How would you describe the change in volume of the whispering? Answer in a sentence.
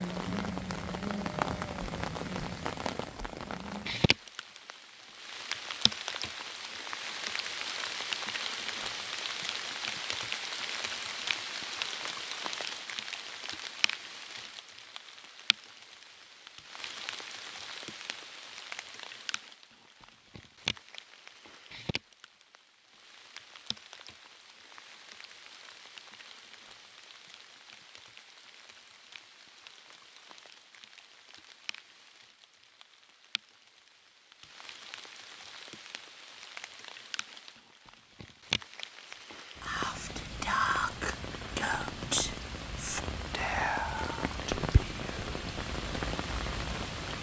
The volume of the whispering goes down.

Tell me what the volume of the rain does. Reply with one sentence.
The volume of the rain goes down, then up.